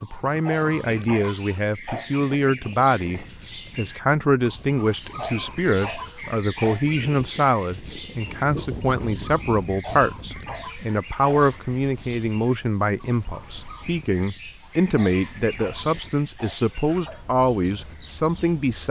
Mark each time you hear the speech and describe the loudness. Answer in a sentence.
You can hear the speech from 0.0 to 18.8 s, at a steady volume.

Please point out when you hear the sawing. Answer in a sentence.
The sawing can't be heard in this clip.